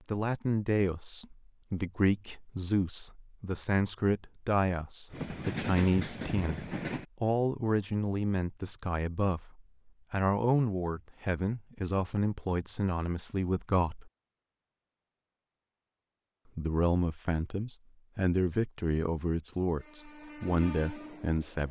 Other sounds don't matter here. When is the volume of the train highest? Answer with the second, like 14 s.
6 s.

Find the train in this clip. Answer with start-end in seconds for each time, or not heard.
5.1-7.0, 19.8-21.6.